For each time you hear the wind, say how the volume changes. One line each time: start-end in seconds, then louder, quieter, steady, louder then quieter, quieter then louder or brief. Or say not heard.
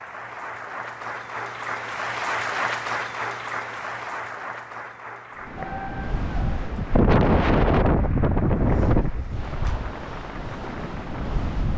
5.4-11.7 louder then quieter.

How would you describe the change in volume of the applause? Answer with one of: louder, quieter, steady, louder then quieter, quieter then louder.
quieter.